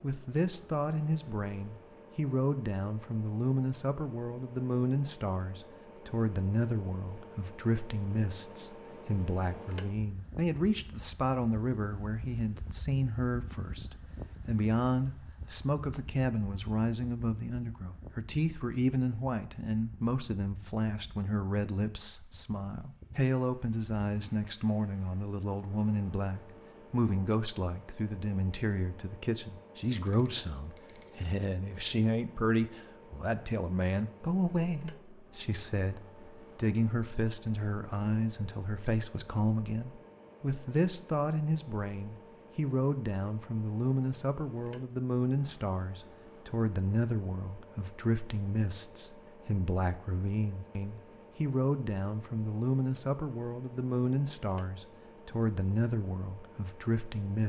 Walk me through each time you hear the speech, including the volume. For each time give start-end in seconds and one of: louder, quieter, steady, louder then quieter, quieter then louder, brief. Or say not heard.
0.0-57.4 steady.